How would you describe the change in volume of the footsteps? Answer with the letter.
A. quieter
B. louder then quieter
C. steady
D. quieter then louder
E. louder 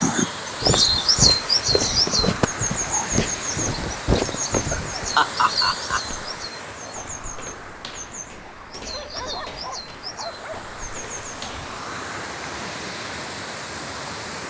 A.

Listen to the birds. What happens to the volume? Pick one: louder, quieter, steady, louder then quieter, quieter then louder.
quieter.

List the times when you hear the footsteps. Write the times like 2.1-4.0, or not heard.
0.6-11.7.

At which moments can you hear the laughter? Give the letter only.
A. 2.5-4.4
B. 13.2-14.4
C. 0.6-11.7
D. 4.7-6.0
D.